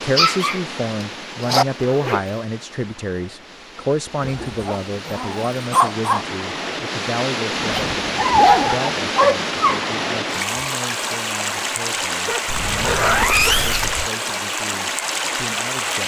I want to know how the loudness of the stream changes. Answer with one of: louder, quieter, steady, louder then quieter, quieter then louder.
louder.